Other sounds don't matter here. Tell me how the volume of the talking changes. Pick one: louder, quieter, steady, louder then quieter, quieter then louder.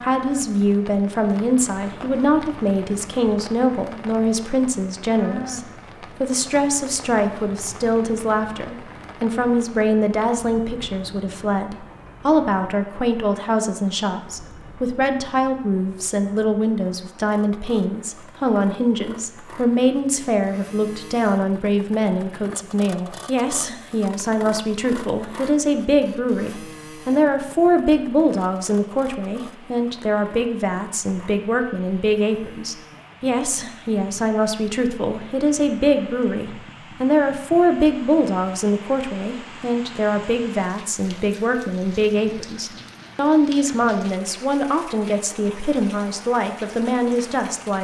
steady.